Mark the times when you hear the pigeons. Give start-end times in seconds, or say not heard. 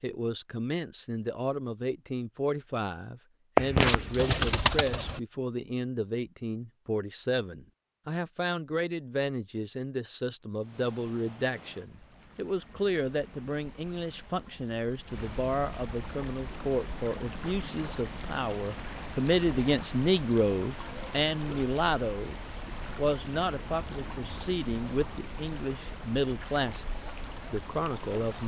3.5-5.2.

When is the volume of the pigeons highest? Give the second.
4 s.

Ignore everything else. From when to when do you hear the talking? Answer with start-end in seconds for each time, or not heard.
0.0-28.4.